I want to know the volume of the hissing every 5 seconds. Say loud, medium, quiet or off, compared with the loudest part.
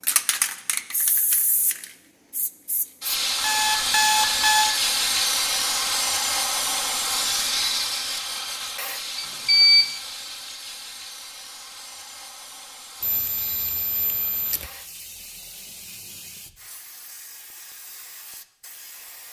loud, loud, quiet, quiet.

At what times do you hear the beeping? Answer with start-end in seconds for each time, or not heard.
3.4-4.8, 9.2-9.9, 13.0-14.7.